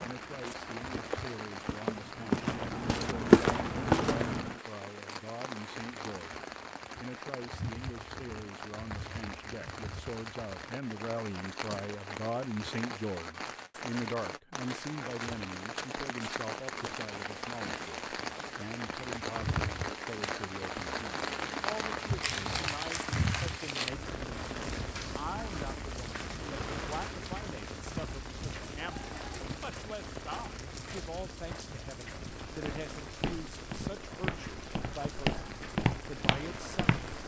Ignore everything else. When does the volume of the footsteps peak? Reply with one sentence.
The loudest moment of the footsteps is at 3 seconds.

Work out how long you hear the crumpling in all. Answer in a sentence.
You can hear the crumpling for 2 seconds altogether.